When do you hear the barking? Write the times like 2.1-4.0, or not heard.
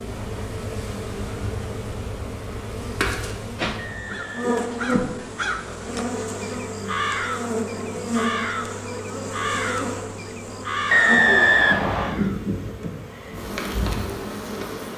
not heard.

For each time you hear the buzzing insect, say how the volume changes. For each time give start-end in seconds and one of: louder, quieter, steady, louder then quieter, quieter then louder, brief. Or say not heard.
0.0-14.9 steady.